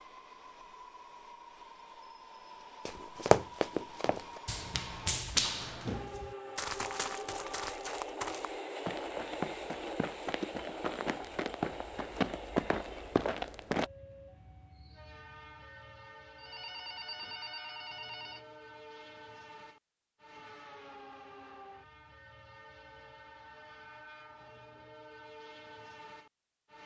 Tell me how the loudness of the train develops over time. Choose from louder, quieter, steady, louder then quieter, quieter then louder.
louder then quieter.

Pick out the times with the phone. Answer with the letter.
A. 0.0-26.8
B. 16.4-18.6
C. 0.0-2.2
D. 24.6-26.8
B.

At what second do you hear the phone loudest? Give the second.
17 s.